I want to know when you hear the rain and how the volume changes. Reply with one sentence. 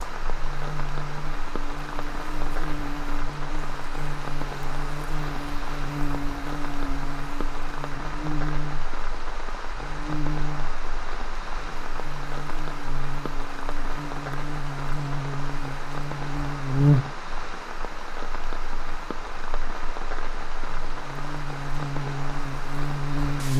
You can hear the rain from 0.0 to 23.5 s, at a steady volume.